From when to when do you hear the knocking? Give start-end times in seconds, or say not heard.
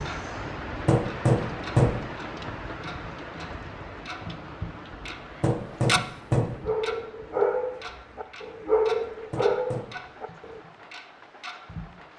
0.8-1.9, 5.4-6.5, 9.3-9.8.